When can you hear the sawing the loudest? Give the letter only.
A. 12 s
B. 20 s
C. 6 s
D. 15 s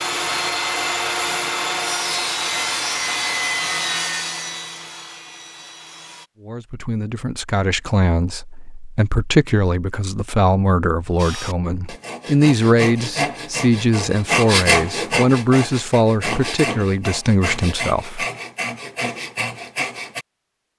D.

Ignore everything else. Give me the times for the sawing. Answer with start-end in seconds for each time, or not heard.
0.0-6.3, 11.2-20.2.